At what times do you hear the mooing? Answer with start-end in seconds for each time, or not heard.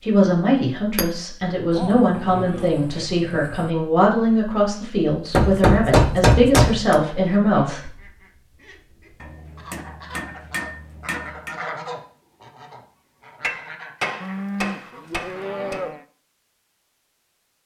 1.7-3.7, 14.2-16.1.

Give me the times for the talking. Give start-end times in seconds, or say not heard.
0.0-7.8.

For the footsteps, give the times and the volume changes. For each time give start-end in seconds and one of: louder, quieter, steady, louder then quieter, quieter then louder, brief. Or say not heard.
not heard.